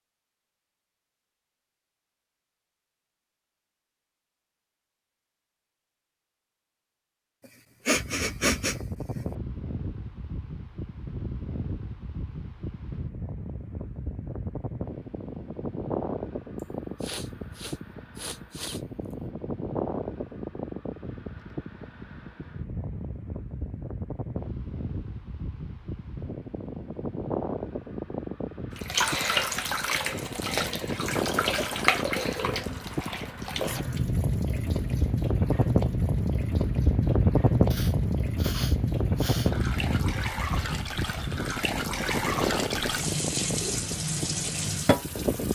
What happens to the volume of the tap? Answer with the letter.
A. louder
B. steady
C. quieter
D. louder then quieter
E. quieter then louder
E.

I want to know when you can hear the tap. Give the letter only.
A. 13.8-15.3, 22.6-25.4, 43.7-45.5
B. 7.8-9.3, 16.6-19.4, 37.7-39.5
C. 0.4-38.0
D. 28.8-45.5
D.